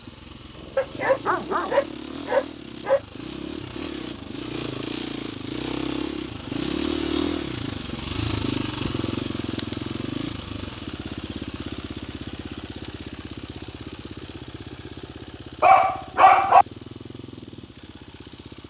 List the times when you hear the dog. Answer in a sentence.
You can hear the dog from 0.8 to 3.0 s and from 15.6 to 16.6 s.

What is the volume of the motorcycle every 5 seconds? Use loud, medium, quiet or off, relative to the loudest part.
medium, loud, medium, quiet.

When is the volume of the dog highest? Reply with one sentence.
The loudest moment of the dog is at 16 seconds.